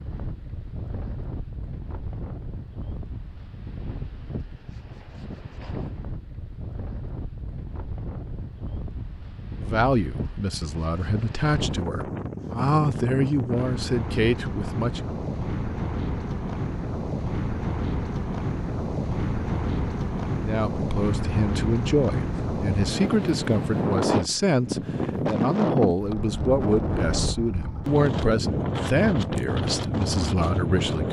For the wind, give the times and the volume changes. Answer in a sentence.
You can hear the wind from 0.0 to 31.0 s, getting louder.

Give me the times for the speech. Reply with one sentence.
The speech can be heard from 9.6 to 15.0 s and from 20.4 to 31.0 s.